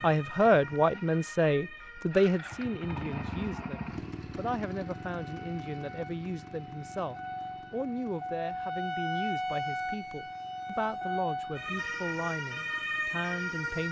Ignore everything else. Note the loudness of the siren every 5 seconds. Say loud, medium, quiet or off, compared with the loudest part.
medium, loud, loud.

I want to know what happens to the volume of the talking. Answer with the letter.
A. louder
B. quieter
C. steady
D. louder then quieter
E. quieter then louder
B.